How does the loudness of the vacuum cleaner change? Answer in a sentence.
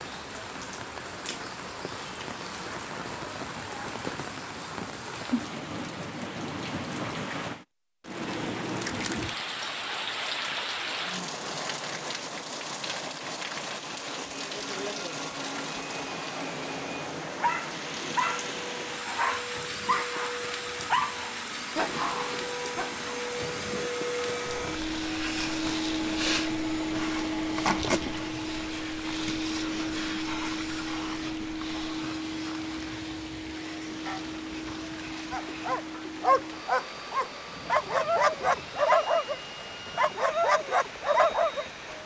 The volume of the vacuum cleaner goes up, then down.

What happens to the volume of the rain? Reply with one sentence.
The volume of the rain goes down.